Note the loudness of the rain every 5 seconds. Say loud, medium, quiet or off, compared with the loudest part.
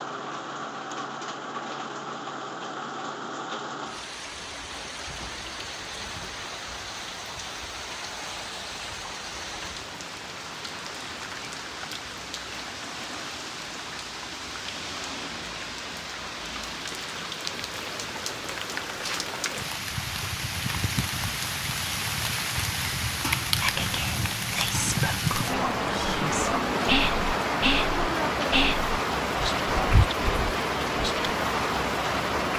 medium, medium, medium, medium, loud, loud, loud.